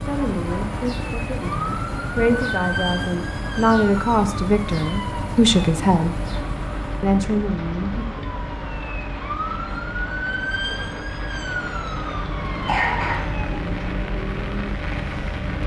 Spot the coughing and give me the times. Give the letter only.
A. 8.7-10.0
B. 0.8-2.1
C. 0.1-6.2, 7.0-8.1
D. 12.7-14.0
D.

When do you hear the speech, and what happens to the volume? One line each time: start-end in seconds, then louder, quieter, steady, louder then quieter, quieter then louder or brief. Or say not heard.
0.1-6.2 louder
7.0-8.1 brief.